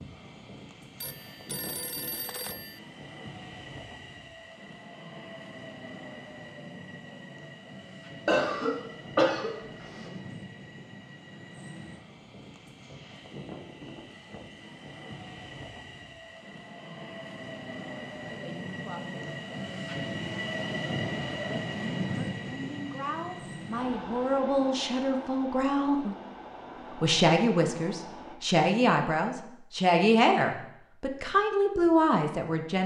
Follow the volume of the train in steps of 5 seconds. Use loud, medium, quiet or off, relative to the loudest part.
medium, medium, medium, medium, loud, medium, off.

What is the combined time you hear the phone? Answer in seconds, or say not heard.
2 s.